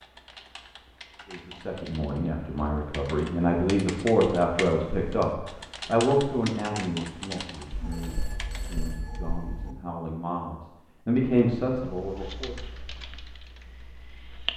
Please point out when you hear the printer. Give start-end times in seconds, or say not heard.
not heard.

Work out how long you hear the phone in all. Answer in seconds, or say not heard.
2 s.